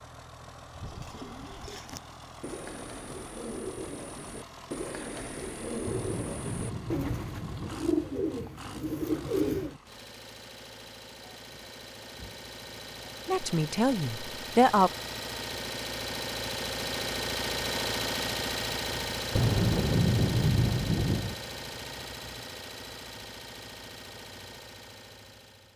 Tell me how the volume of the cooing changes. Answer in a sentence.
The volume of the cooing goes up.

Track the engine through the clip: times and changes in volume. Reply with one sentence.
The engine can be heard from 0.0 to 25.7 s, getting louder then quieter.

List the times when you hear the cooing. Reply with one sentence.
The cooing can be heard from 0.6 to 9.8 s.